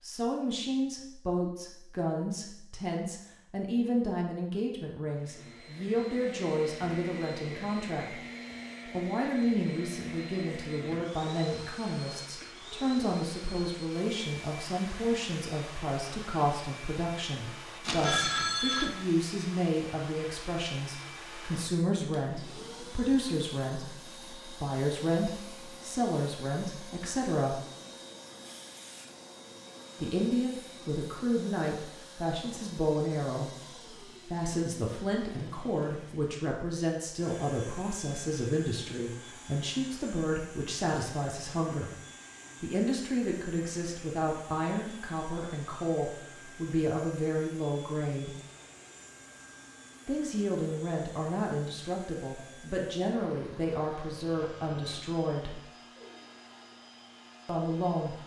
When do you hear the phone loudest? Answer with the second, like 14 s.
18 s.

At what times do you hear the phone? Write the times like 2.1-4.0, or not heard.
17.8-18.9, 54.4-55.0.